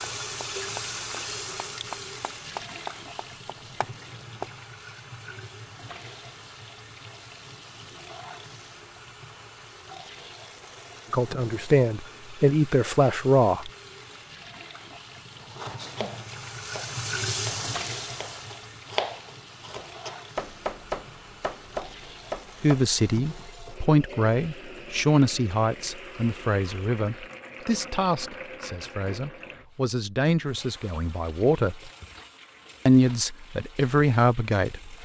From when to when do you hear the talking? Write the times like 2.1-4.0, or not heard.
11.1-13.7, 22.6-31.9, 32.9-35.0.